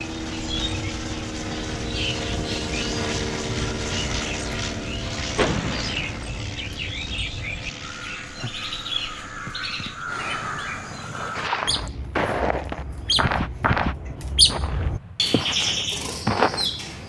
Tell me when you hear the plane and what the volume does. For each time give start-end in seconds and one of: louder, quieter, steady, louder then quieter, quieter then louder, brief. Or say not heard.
0.0-17.0 quieter.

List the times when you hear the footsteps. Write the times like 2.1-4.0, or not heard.
11.3-16.7.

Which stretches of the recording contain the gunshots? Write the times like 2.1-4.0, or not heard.
5.3-6.2.